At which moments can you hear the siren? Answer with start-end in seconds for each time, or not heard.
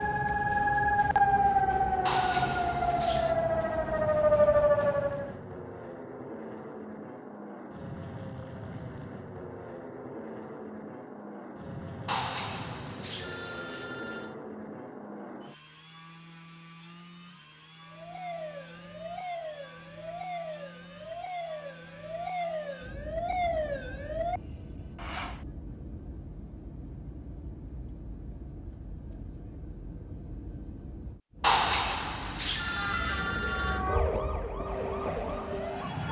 0.0-5.3, 17.9-25.4, 32.6-36.0.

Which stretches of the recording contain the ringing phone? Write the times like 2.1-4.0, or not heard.
2.0-3.4, 12.1-14.3, 31.4-33.9.